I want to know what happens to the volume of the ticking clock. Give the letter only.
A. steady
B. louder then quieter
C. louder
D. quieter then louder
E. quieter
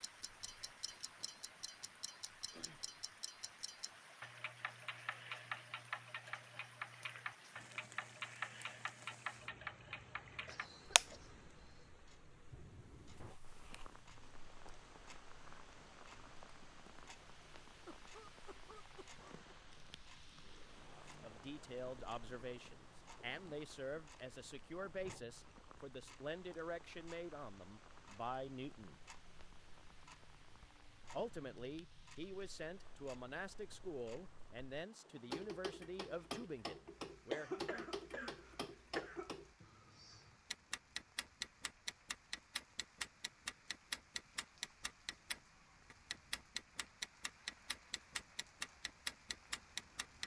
D.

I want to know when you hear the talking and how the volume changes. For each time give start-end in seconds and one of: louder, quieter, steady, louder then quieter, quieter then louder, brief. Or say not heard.
20.9-29.0 steady
31.1-37.9 steady.